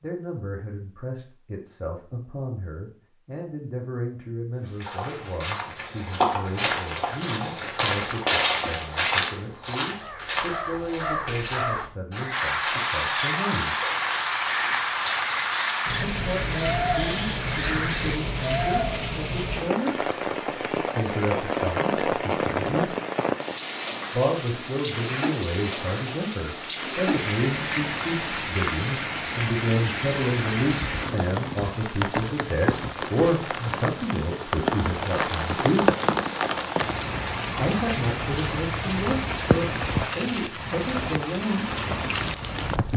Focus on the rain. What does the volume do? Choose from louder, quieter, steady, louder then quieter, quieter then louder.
steady.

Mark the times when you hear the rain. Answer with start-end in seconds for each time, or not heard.
12.3-42.9.